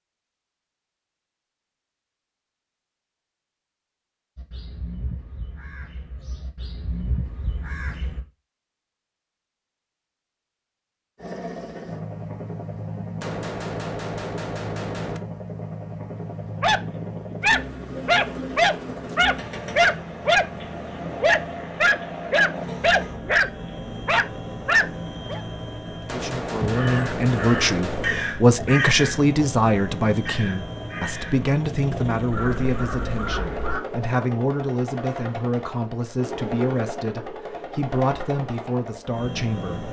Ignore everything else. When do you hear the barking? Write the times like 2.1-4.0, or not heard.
16.6-25.4.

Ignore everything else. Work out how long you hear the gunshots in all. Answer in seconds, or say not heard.
4 s.